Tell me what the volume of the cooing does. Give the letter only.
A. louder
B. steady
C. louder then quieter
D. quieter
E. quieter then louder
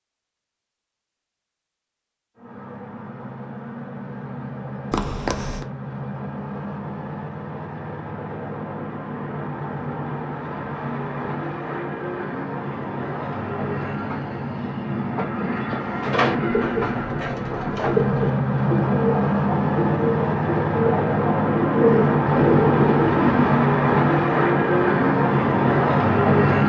A.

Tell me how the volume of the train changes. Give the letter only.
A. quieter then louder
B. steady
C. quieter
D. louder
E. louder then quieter
D.